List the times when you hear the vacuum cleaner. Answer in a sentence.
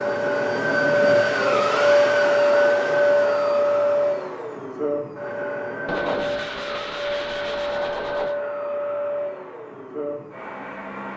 You can hear the vacuum cleaner from 0.0 to 11.1 s.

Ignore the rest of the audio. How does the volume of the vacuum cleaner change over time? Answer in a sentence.
The loudness of the vacuum cleaner goes down.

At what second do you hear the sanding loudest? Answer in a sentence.
The loudest moment of the sanding is at 6 seconds.